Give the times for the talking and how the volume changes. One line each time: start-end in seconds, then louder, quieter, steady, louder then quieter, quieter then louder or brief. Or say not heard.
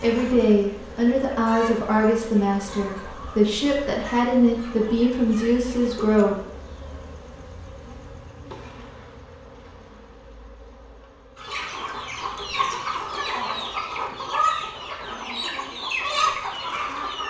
0.0-6.4 steady.